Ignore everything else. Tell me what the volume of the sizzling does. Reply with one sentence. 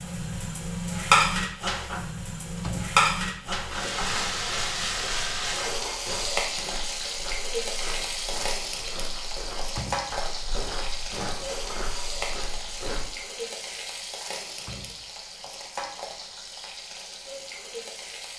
The loudness of the sizzling goes down.